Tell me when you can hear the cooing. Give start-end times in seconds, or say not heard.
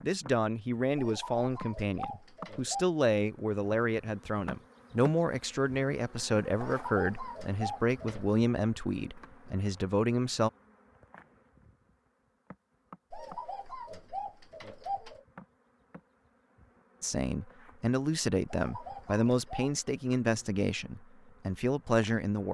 0.9-2.9, 6.5-8.3, 13.1-15.2, 18.4-19.7.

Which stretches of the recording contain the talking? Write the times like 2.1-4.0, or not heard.
0.0-10.5, 17.0-22.4.